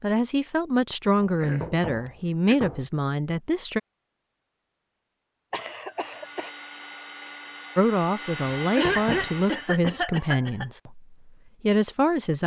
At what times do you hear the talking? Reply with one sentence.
The talking can be heard from 0.0 to 3.8 s and from 7.8 to 12.4 s.